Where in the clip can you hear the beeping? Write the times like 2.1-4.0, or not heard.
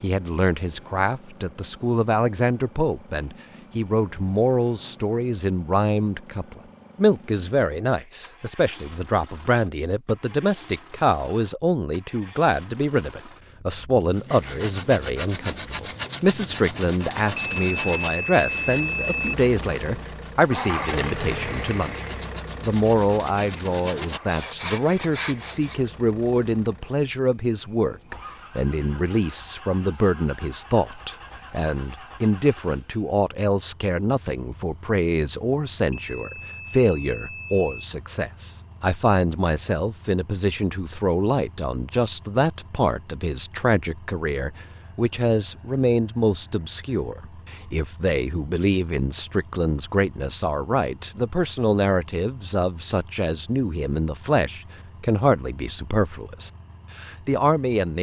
17.4-19.4, 35.9-37.9.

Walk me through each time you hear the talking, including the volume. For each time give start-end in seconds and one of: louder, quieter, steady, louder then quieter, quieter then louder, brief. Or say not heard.
0.0-57.9 steady.